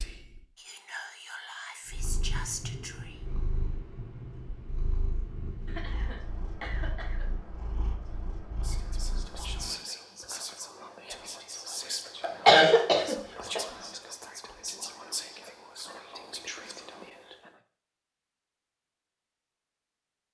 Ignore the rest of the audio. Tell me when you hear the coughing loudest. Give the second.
13 s.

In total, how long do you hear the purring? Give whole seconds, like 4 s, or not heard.
8 s.